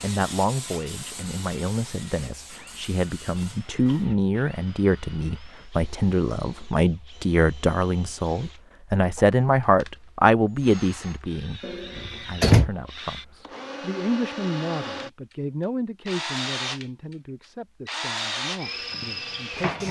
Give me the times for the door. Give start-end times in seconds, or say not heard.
11.6-12.7.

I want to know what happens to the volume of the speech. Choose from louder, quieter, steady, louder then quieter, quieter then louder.
louder then quieter.